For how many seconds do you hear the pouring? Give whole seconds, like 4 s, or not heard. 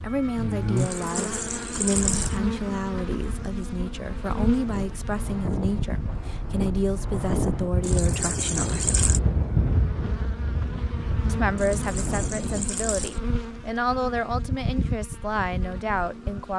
5 s.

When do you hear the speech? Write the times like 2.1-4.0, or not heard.
0.0-8.9, 11.2-16.5.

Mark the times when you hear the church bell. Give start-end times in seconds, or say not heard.
not heard.